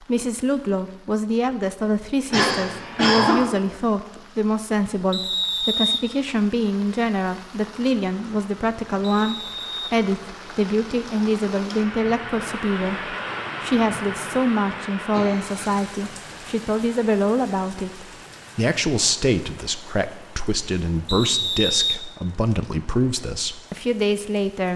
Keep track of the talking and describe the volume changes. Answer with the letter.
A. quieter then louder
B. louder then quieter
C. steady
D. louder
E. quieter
C.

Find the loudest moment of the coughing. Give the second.
3 s.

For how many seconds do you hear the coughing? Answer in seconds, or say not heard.
2 s.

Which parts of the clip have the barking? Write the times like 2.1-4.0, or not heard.
not heard.